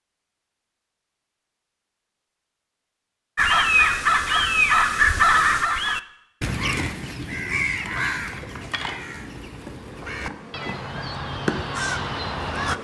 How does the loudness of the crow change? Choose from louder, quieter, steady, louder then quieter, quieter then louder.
quieter then louder.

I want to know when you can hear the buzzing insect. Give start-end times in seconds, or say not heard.
7.8-12.7.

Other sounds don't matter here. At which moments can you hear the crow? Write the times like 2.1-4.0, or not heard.
3.4-12.7.